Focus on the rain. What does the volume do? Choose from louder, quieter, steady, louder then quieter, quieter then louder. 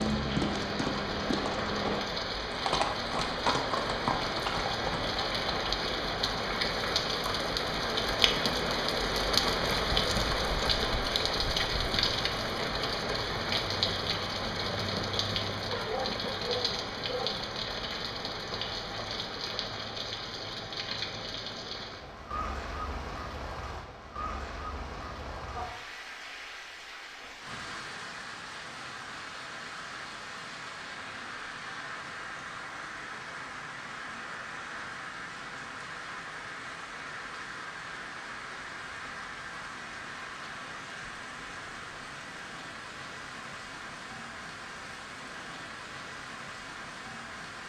quieter.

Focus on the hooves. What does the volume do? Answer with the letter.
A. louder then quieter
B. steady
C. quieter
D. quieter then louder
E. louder
B.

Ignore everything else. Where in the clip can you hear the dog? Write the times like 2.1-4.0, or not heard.
15.7-17.4.